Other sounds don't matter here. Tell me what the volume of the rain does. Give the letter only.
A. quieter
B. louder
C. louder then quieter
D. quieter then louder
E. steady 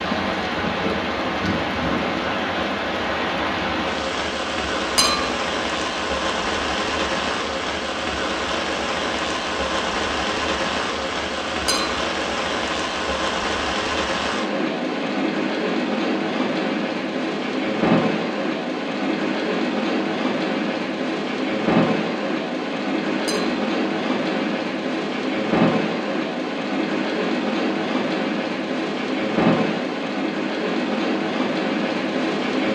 E.